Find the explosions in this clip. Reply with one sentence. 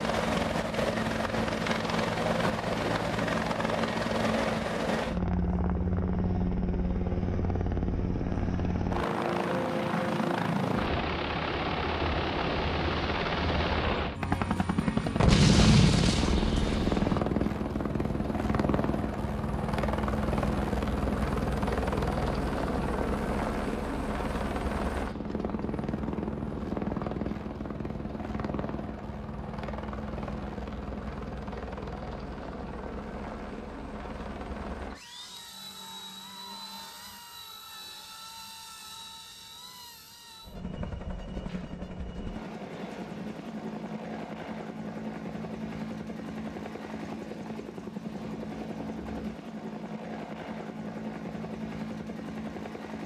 The explosions can be heard from 15.2 to 17.2 s.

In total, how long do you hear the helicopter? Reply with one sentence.
You can hear the helicopter for 53 seconds altogether.